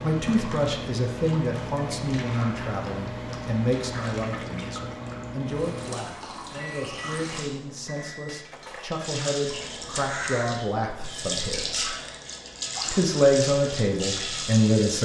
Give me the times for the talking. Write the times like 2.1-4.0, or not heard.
0.0-11.9, 12.9-14.9.